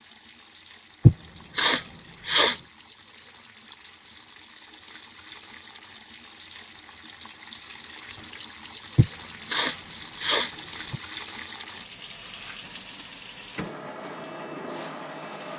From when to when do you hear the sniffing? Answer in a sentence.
The sniffing can be heard from 1.1 to 2.6 s and from 8.9 to 11.0 s.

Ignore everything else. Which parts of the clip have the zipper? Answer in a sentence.
You can't hear the zipper here.